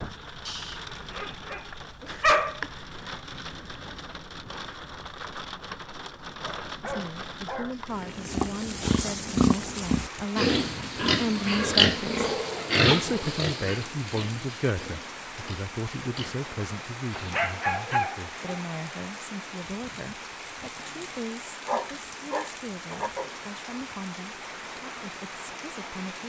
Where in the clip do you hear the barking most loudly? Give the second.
2 s.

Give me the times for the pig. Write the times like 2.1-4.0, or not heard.
8.2-17.4.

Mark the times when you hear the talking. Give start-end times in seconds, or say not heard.
6.8-26.2.